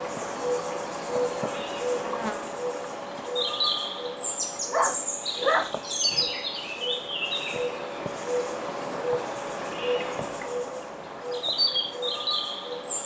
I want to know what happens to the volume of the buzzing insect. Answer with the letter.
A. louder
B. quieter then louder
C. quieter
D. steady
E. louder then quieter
D.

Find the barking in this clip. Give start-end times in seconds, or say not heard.
4.7-6.2.